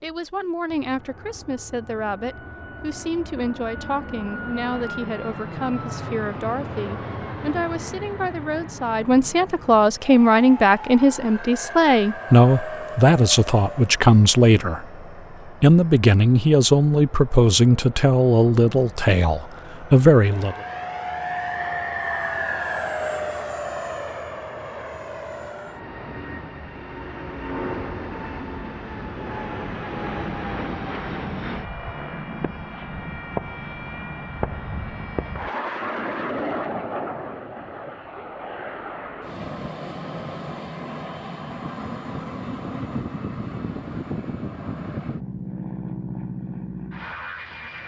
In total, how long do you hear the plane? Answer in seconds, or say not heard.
48 s.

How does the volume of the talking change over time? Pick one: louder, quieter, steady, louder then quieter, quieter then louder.
louder.